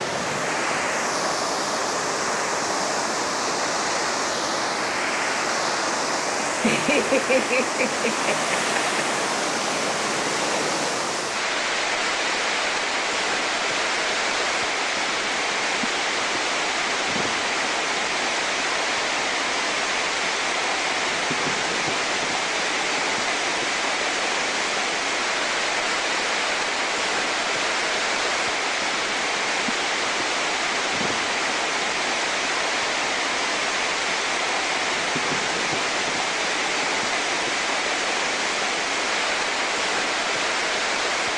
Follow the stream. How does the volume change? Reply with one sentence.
The volume of the stream stays about the same.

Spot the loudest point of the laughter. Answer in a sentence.
The volume of the laughter peaks at 7 seconds.